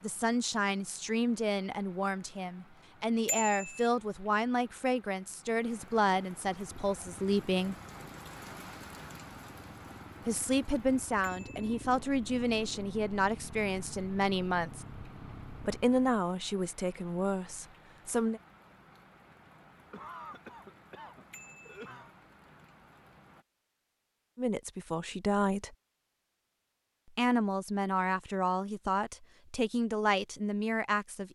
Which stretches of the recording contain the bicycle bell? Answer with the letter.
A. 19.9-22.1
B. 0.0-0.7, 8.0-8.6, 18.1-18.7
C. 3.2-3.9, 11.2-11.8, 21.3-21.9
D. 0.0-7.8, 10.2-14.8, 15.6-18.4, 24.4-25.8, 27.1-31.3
C.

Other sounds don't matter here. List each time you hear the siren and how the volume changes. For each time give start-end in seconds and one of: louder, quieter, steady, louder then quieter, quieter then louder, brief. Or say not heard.
not heard.